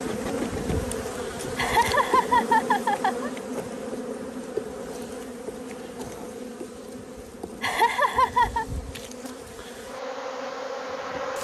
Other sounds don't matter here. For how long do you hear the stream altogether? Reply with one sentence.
You can't hear the stream here.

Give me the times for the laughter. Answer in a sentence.
You can hear the laughter from 1.6 to 3.3 s and from 7.6 to 8.7 s.